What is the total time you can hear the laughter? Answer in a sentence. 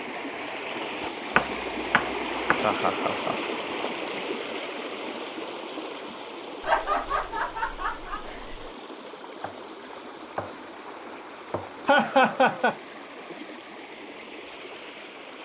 You can hear the laughter for 4 seconds altogether.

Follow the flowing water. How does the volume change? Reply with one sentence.
The loudness of the flowing water goes down.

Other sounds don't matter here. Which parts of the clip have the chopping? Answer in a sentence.
The chopping can be heard from 1.4 to 2.6 s and from 9.4 to 11.9 s.